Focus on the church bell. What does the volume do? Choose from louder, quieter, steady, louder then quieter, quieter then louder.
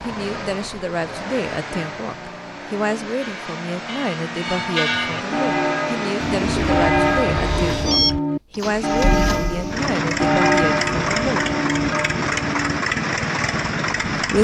louder.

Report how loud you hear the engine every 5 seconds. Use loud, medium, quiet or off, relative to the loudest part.
medium, loud, loud.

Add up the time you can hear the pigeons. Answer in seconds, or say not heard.
2 s.